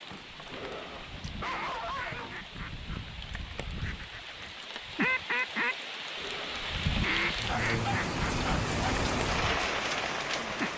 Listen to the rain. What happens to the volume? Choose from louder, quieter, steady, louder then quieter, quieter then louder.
louder.